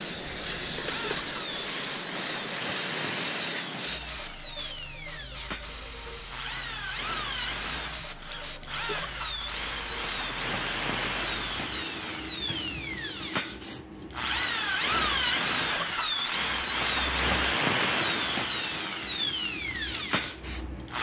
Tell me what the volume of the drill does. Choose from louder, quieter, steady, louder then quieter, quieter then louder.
louder.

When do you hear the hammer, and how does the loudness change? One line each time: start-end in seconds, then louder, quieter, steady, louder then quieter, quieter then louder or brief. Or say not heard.
not heard.